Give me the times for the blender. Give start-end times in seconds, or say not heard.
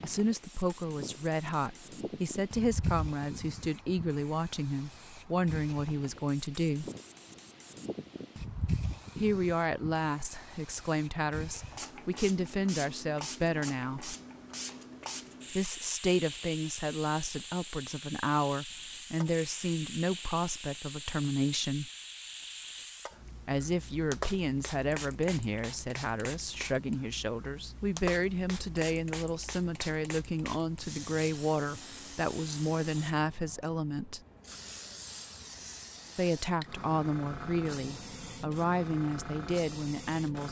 not heard.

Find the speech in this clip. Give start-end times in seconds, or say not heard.
0.0-6.9, 9.2-14.2, 15.5-21.9, 23.4-34.2, 36.1-40.4.